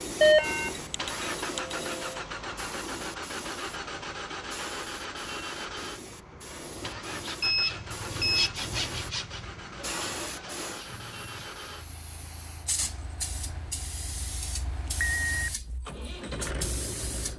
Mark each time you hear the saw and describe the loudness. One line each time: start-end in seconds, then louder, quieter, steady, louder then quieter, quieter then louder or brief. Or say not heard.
6.9-11.5 louder then quieter.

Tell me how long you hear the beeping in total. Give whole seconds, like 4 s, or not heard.
4 s.